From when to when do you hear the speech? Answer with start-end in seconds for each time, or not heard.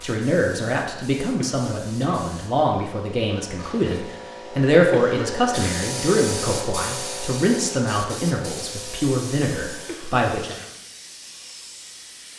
0.0-10.6.